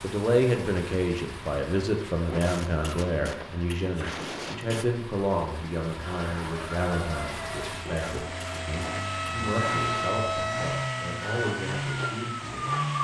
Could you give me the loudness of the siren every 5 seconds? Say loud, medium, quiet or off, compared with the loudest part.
off, loud, loud.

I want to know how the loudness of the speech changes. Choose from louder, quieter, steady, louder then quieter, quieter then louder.
quieter.